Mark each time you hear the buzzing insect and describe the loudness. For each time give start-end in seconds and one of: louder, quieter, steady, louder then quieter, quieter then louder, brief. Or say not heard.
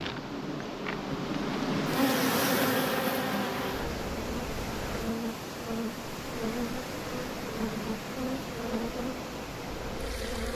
0.0-10.5 quieter.